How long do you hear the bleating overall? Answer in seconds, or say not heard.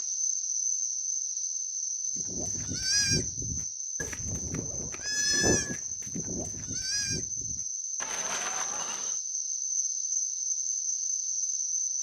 7 s.